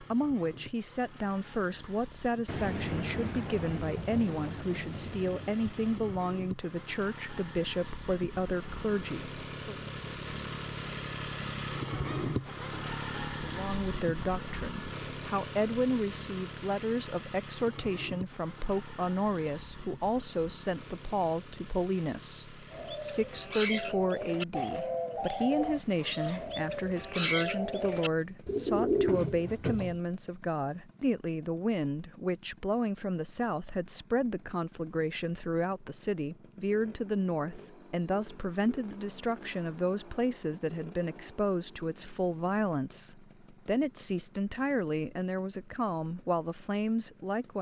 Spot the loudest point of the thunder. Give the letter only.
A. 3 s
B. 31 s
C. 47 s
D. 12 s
A.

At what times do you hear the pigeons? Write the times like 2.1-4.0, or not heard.
22.7-29.9.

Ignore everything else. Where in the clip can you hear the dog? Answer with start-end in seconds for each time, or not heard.
not heard.